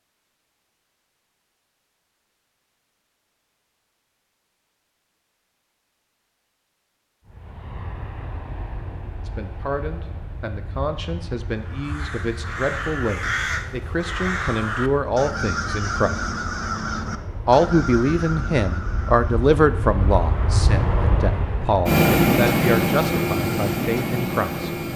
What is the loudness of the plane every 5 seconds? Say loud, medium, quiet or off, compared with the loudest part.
off, quiet, quiet, quiet, loud.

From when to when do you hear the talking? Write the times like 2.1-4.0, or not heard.
9.2-16.1, 17.4-24.9.